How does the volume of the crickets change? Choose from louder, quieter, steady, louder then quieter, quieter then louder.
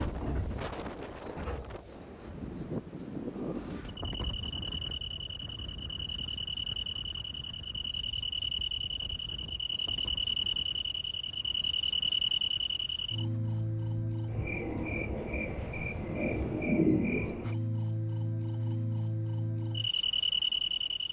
louder.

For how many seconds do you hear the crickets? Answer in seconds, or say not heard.
21 s.